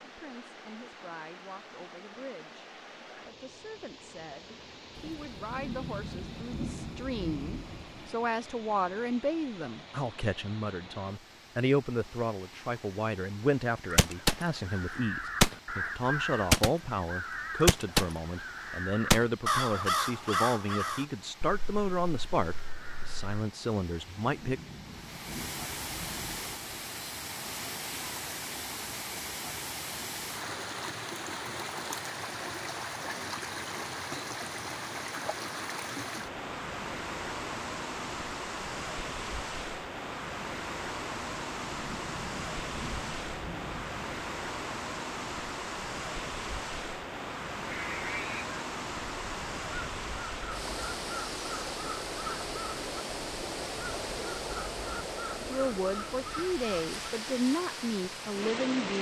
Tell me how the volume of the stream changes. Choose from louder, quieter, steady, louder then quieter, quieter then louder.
louder.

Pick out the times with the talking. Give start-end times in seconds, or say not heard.
0.1-24.6, 55.4-58.9.